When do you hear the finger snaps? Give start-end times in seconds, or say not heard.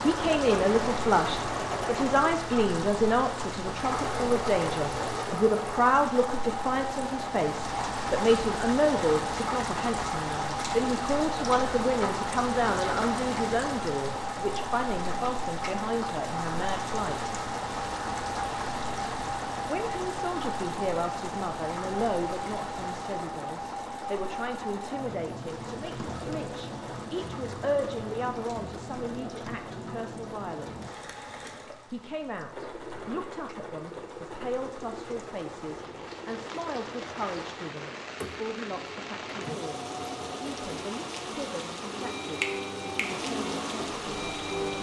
42.4-43.2.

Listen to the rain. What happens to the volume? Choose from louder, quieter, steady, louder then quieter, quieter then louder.
quieter then louder.